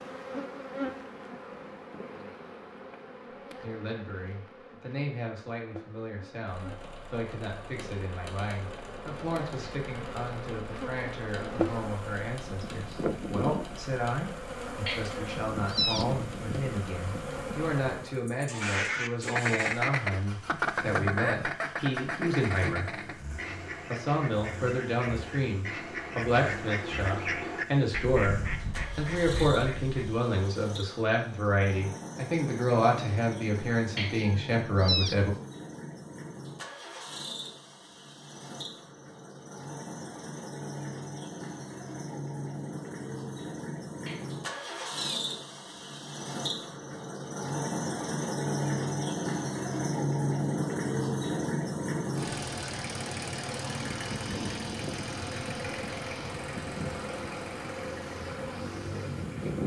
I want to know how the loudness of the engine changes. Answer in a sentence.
The volume of the engine goes up.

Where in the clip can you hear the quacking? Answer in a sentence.
The quacking can be heard from 18.6 to 30.1 s.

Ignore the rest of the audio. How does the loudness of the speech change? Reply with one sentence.
The loudness of the speech goes up.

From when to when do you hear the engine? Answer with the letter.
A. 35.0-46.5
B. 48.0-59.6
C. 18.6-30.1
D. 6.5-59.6
D.